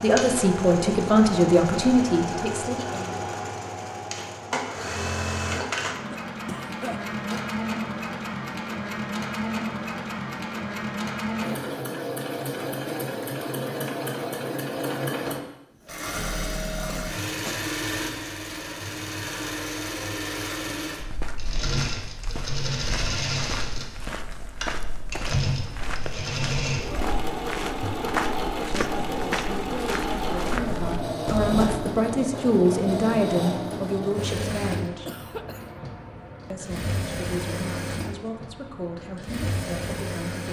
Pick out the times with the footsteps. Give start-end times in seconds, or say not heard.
21.0-31.8.